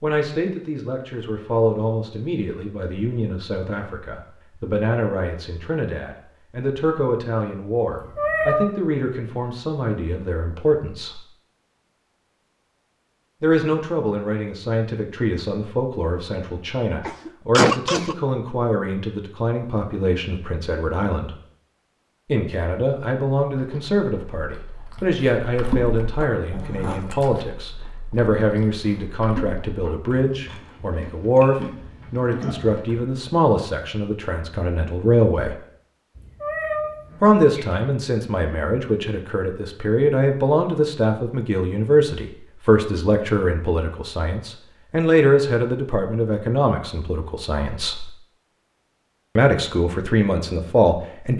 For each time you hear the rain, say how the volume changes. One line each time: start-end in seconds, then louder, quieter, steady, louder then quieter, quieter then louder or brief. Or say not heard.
not heard.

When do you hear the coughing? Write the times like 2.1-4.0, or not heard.
17.1-18.1.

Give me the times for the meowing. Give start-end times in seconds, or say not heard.
7.9-8.7, 36.1-37.8.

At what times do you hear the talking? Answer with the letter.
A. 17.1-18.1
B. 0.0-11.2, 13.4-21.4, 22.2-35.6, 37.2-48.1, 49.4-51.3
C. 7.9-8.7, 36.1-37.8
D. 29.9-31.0
B.